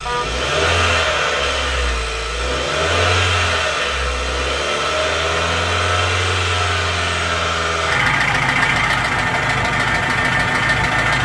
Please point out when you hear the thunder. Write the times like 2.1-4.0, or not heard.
not heard.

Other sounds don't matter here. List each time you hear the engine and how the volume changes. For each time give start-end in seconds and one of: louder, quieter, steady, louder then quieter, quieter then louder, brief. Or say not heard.
0.0-11.2 steady.